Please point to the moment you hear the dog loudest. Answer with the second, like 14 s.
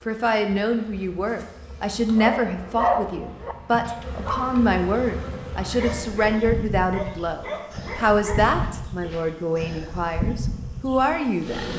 3 s.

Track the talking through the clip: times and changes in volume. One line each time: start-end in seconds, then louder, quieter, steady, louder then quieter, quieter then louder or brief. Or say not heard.
0.1-11.7 steady.